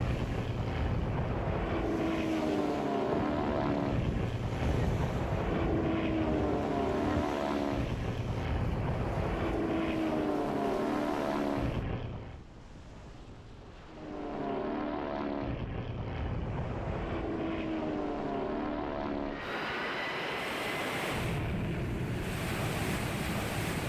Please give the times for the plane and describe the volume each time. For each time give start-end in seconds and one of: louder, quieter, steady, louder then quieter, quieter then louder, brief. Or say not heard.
0.0-12.4 steady
13.9-23.8 steady.